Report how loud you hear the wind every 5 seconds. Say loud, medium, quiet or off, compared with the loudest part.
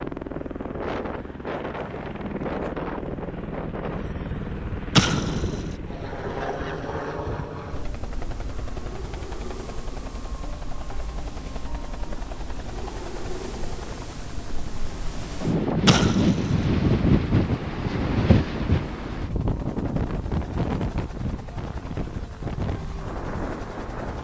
medium, quiet, quiet, loud, medium.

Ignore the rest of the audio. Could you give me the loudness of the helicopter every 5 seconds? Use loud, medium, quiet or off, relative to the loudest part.
loud, loud, medium, medium, medium.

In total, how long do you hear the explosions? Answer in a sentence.
You can hear the explosions for 2 seconds altogether.